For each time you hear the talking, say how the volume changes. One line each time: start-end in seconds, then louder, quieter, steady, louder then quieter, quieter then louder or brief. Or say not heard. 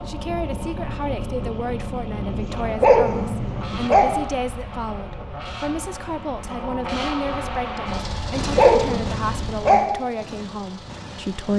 0.1-11.5 steady.